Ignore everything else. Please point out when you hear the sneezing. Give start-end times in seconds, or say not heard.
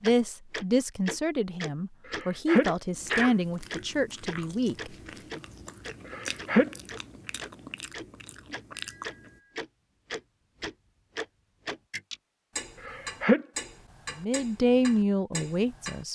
2.1-3.4, 6.0-6.7, 12.8-13.4.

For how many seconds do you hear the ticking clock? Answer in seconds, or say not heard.
16 s.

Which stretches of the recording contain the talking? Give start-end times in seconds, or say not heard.
0.0-5.4, 14.2-16.1.